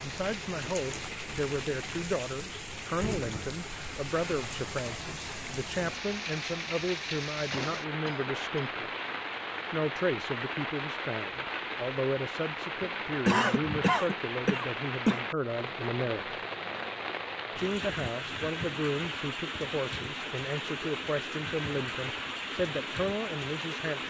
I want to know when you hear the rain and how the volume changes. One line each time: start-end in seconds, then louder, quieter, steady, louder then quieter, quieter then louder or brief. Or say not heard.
0.0-24.0 steady.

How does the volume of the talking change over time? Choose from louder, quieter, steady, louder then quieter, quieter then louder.
steady.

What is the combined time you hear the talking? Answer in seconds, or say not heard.
22 s.